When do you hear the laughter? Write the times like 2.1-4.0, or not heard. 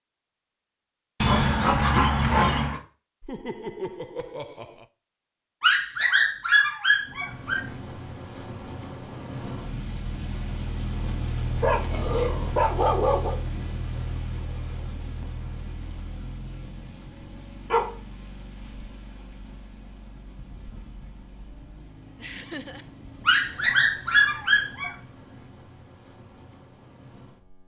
3.2-4.8, 22.1-22.9.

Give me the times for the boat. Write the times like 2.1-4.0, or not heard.
7.0-27.6.